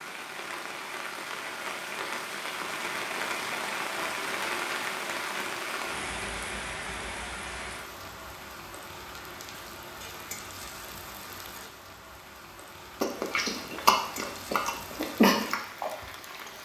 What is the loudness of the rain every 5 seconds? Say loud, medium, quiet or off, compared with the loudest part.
loud, loud, medium, medium.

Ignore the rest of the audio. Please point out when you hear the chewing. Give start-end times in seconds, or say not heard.
13.0-16.6.